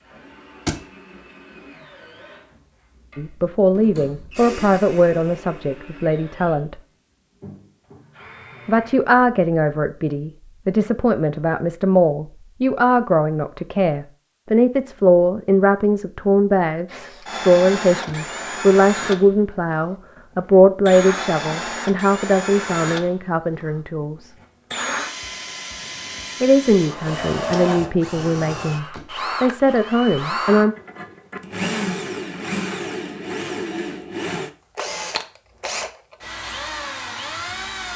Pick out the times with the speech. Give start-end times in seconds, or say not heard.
3.1-6.8, 8.7-24.4, 26.4-30.8.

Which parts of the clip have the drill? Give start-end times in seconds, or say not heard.
0.0-9.0, 16.9-37.9.